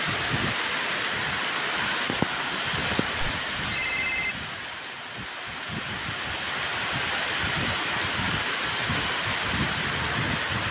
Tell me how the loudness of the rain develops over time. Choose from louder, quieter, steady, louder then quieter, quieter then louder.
quieter then louder.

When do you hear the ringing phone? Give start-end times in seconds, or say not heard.
3.3-4.3.